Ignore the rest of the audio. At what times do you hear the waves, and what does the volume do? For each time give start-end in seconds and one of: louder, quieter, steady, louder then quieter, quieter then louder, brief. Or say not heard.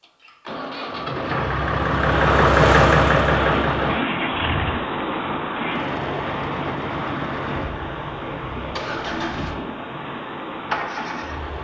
2.0-11.5 quieter.